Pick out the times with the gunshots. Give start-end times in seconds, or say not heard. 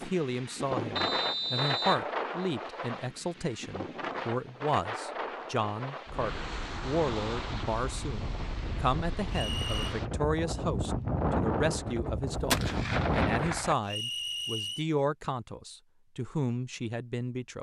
12.3-13.8.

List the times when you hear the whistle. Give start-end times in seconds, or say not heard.
0.9-2.0, 9.3-9.9, 13.8-14.8.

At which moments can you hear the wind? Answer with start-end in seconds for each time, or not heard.
0.0-13.6.